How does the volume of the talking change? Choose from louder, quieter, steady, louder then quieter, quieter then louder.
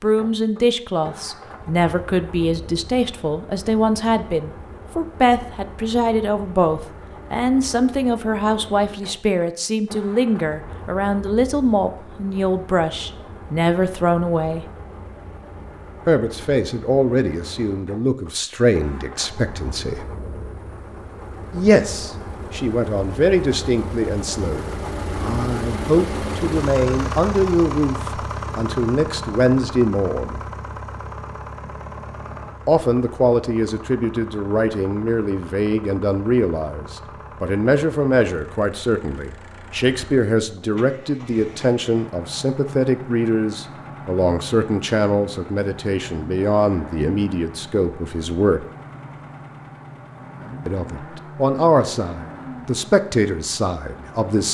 steady.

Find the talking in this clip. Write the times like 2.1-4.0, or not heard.
0.0-14.7, 16.1-20.1, 21.5-30.4, 32.6-48.6, 50.6-54.5.